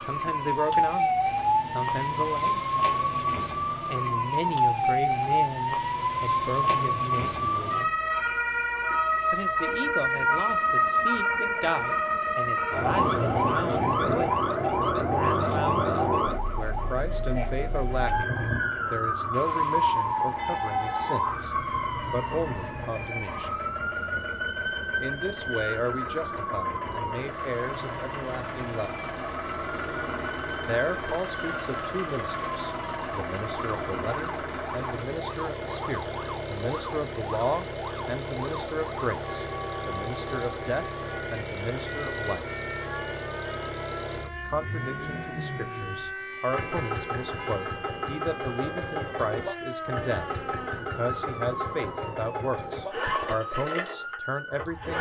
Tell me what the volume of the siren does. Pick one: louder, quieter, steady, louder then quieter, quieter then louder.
quieter.